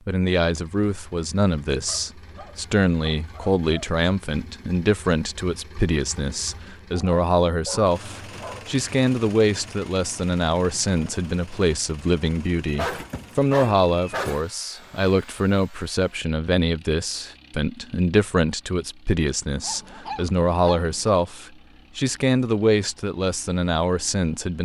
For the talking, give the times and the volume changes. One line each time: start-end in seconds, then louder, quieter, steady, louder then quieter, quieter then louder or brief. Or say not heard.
0.1-24.5 steady.